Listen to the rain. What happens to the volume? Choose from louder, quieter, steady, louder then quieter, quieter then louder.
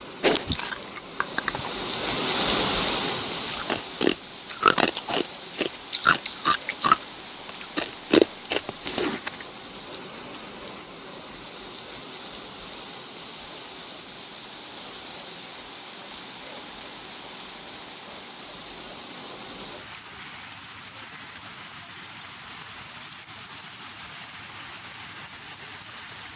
quieter.